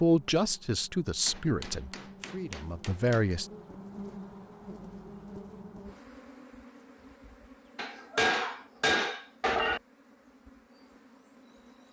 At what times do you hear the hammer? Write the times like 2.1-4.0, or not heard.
1.2-3.2, 7.8-9.8.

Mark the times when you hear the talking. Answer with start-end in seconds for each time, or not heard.
0.0-3.5.